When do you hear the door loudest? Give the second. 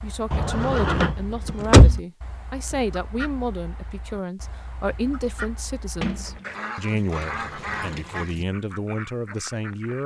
2 s.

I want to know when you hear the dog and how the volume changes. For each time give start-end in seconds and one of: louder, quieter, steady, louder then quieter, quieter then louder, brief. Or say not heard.
not heard.